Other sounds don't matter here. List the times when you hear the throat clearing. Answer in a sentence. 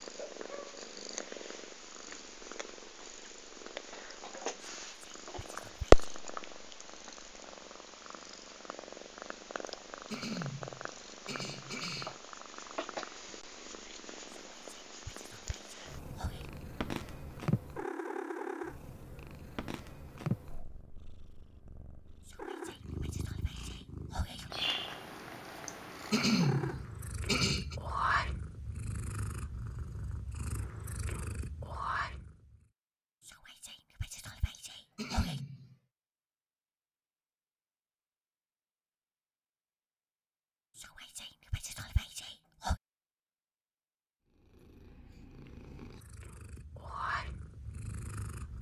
The throat clearing can be heard from 9.7 to 12.2 s, from 25.6 to 27.8 s and from 34.5 to 35.8 s.